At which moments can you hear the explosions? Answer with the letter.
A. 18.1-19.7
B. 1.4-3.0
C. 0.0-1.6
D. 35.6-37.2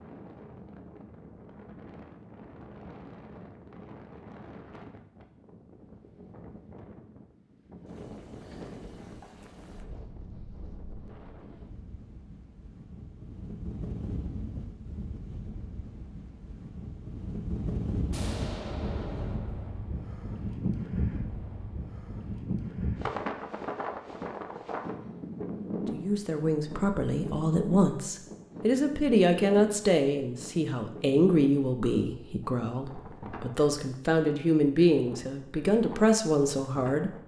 A.